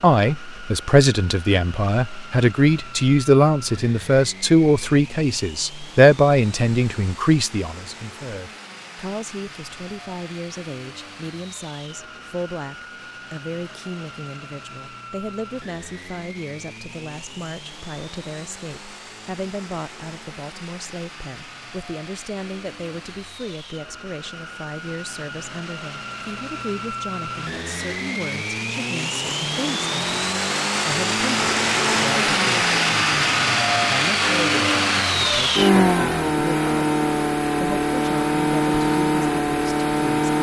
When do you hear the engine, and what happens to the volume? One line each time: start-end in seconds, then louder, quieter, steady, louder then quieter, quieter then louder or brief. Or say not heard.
0.0-40.3 louder.